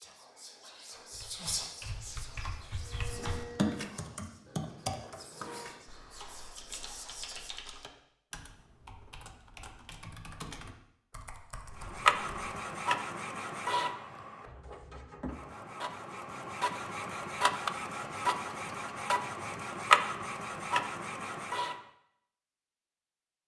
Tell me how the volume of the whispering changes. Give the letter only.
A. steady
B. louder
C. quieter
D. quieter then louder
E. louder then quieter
D.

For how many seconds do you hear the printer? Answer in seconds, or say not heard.
13 s.